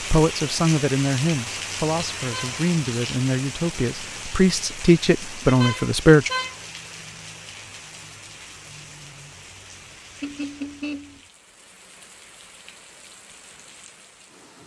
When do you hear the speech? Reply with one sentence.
The speech can be heard from 0.0 to 6.3 s.